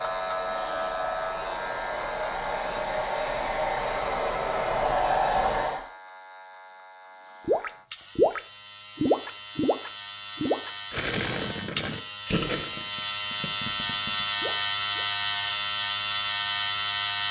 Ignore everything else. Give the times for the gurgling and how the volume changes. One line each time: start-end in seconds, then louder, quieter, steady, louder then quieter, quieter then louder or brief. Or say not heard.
7.5-15.1 quieter.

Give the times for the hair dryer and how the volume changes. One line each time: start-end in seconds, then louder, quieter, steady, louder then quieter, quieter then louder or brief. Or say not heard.
0.0-5.8 louder.